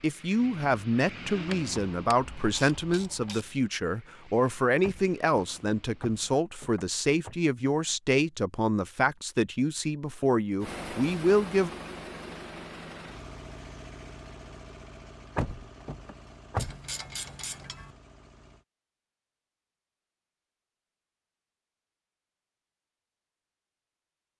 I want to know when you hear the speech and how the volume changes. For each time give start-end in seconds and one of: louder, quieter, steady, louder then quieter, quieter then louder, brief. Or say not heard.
0.0-11.7 steady.